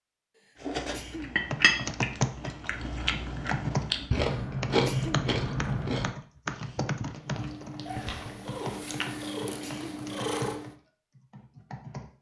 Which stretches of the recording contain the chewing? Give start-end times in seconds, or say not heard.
0.6-9.1.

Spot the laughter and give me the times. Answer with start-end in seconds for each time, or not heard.
not heard.